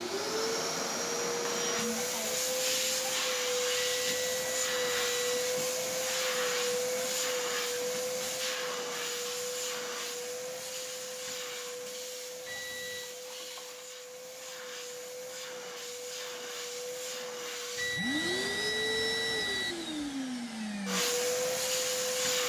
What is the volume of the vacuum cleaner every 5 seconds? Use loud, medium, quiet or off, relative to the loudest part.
loud, loud, medium, medium, loud.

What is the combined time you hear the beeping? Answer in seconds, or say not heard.
4 s.